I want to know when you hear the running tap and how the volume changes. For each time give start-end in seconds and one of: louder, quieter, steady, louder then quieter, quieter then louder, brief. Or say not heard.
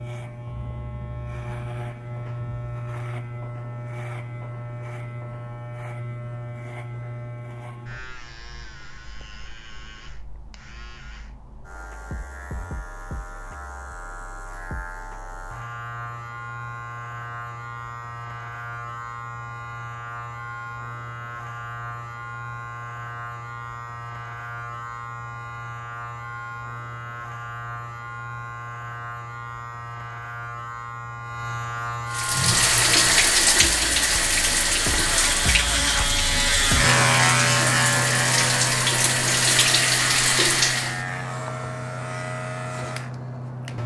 32.1-41.0 quieter then louder.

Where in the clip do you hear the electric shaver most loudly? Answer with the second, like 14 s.
37 s.